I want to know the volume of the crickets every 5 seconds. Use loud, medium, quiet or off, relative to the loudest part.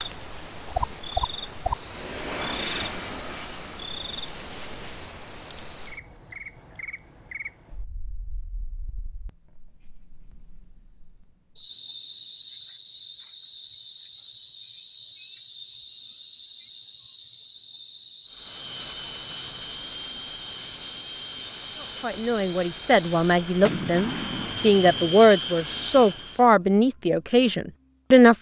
loud, medium, medium, medium, medium, quiet.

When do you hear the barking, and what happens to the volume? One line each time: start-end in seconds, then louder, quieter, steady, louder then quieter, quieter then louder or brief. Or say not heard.
not heard.